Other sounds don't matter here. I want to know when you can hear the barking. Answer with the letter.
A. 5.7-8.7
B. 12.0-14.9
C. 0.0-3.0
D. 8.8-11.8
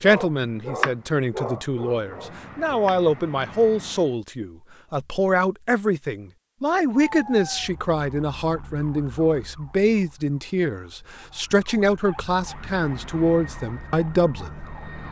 C.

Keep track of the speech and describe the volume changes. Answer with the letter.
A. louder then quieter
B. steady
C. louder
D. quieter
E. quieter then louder
B.